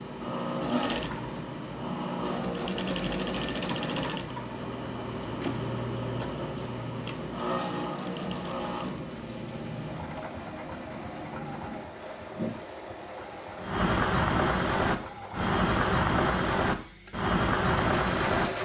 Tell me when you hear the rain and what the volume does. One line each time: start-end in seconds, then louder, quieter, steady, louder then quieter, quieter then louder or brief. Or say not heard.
0.0-18.6 louder.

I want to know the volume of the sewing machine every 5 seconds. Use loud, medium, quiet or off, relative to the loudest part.
loud, loud, medium, loud.